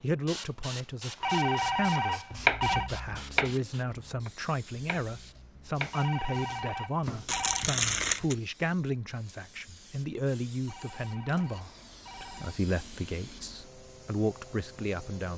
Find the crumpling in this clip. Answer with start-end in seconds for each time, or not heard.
7.2-8.3.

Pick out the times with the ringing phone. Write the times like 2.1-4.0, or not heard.
1.2-2.9, 5.9-7.7, 10.7-12.6.